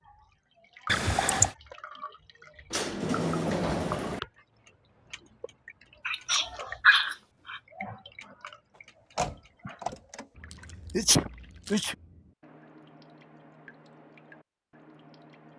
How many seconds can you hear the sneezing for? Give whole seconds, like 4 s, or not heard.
4 s.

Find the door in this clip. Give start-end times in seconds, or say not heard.
2.7-4.2, 9.2-10.2.